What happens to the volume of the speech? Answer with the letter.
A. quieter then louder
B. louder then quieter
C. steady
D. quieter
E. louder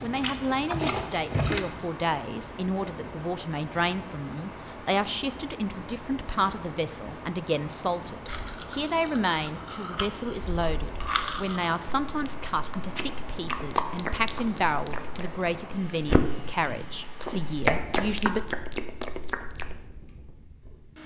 C.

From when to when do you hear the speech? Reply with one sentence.
You can hear the speech from 0.0 to 18.4 s.